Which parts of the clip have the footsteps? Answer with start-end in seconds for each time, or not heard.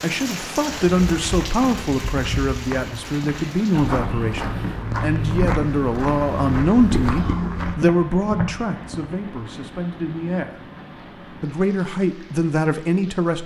0.9-9.1.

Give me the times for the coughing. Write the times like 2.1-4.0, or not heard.
7.1-7.5.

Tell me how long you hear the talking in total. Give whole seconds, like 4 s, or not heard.
13 s.